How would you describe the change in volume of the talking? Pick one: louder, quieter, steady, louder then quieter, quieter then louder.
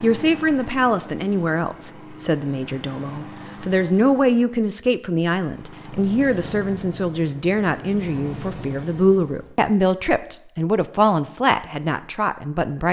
steady.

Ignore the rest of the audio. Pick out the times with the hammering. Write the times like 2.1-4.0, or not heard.
not heard.